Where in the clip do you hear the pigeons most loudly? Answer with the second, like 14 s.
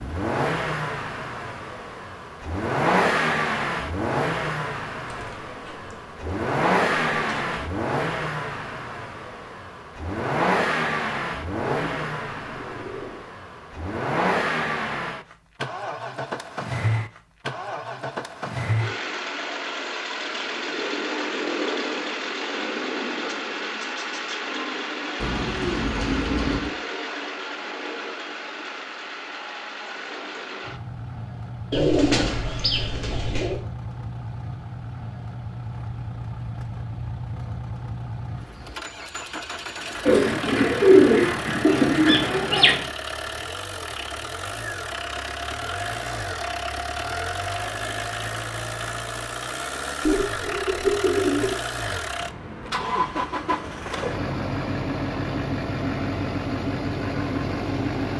41 s.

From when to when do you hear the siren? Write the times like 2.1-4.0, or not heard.
not heard.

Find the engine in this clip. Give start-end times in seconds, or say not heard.
0.0-58.1.